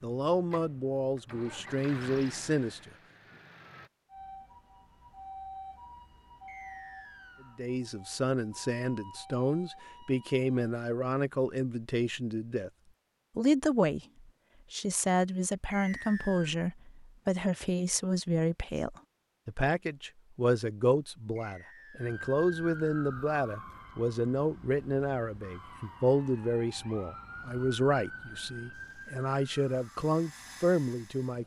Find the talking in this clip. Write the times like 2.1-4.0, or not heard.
0.0-2.9, 7.5-12.7, 13.3-14.0, 14.7-31.4.